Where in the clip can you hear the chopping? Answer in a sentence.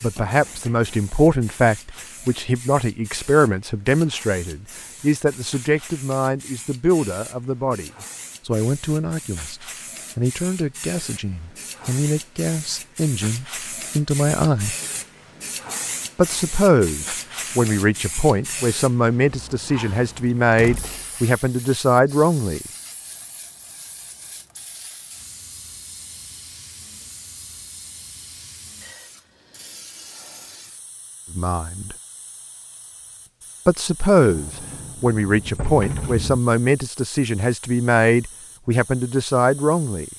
You can't hear the chopping here.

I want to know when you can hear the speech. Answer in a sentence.
The speech can be heard from 0.0 to 14.8 s, from 16.1 to 22.6 s, from 31.3 to 31.9 s and from 33.6 to 40.0 s.